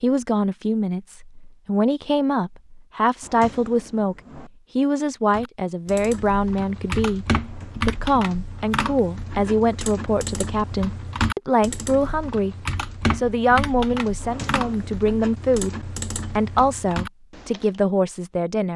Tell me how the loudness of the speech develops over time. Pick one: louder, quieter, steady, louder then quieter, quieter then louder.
steady.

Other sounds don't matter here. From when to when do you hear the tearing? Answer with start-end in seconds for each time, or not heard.
not heard.